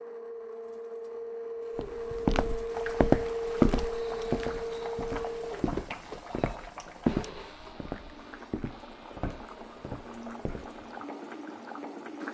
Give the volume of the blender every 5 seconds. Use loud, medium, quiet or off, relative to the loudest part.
loud, medium, quiet.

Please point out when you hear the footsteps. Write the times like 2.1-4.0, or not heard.
1.8-10.8.